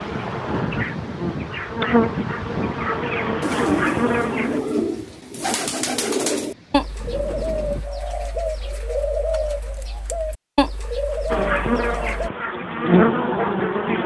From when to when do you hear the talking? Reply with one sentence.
You can't hear the talking here.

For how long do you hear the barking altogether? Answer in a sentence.
The barking can't be heard in this clip.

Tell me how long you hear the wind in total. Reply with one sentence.
The wind can be heard for 8 seconds in total.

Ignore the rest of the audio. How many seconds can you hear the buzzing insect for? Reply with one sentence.
The buzzing insect can be heard for 7 seconds in total.